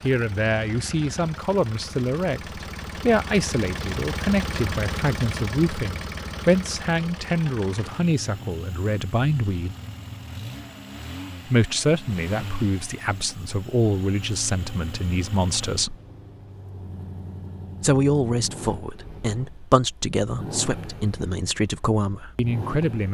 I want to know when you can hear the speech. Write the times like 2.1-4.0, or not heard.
0.0-9.8, 11.4-15.9, 17.8-23.1.